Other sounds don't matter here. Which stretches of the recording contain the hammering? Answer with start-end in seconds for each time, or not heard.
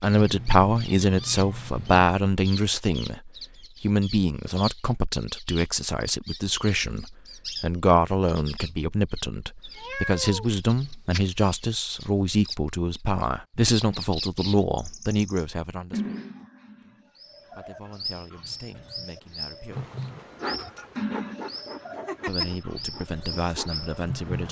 not heard.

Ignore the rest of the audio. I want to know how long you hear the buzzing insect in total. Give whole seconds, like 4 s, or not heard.
5 s.